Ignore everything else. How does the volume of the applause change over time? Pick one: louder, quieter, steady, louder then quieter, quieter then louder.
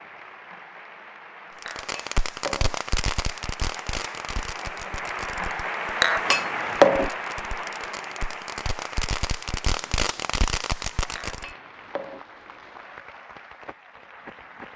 louder then quieter.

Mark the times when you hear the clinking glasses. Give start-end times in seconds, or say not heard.
1.6-2.8, 6.0-7.1, 11.2-12.2.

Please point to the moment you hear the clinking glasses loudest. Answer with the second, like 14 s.
7 s.